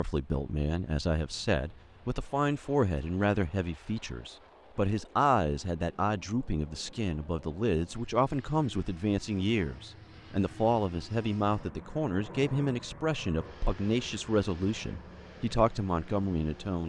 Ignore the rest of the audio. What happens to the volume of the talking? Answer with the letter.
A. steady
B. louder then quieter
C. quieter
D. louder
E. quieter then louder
A.